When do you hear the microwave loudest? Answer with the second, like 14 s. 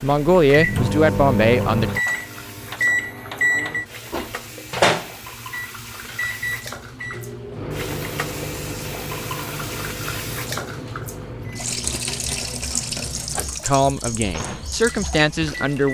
3 s.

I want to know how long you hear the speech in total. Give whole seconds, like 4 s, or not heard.
4 s.